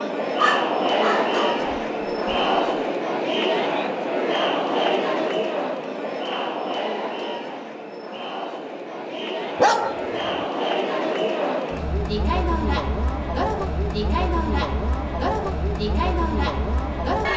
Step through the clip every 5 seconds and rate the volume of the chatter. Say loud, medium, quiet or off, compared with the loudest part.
loud, medium, loud, loud.